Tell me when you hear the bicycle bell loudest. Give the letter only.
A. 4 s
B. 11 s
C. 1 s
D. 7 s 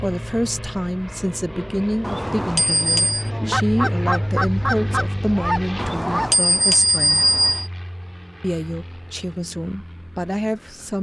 D.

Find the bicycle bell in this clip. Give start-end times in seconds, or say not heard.
2.0-3.3, 5.8-7.7.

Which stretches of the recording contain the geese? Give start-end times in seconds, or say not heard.
2.9-6.4.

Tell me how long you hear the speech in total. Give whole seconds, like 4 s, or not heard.
10 s.